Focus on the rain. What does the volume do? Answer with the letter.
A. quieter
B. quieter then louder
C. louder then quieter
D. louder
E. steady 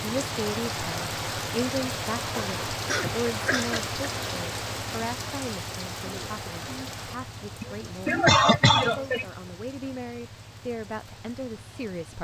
A.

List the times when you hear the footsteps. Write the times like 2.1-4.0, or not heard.
not heard.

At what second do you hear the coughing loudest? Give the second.
8 s.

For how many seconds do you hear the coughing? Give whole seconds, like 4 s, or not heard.
3 s.